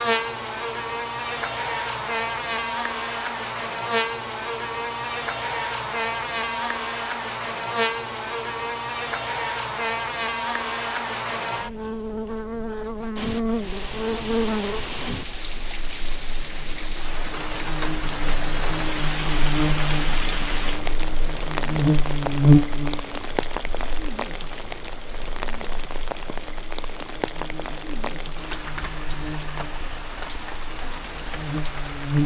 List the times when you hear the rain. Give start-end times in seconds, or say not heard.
13.2-32.2.